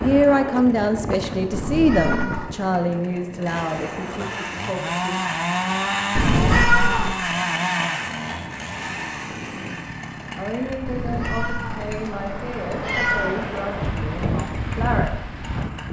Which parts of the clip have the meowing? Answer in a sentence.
The meowing can be heard from 1.5 to 2.5 s, from 6.2 to 7.2 s and from 10.8 to 13.4 s.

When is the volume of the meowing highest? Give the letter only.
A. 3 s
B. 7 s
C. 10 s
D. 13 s
B.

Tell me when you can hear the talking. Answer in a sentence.
You can hear the talking from 0.0 to 5.2 s and from 10.3 to 15.2 s.